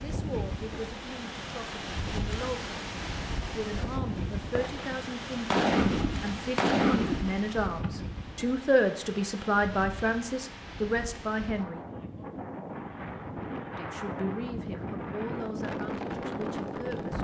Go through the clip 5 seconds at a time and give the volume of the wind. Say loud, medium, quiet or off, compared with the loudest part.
loud, medium, medium, loud.